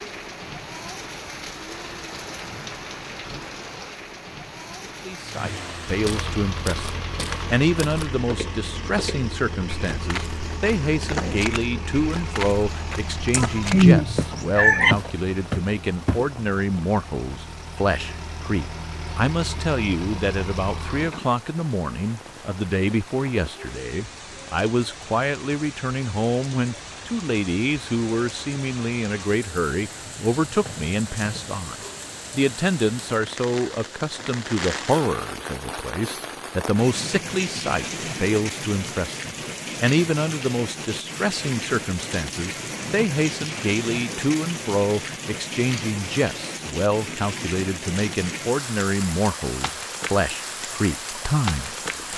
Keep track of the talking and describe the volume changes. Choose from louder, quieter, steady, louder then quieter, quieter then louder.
steady.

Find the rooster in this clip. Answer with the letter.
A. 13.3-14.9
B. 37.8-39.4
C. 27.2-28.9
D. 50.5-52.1
A.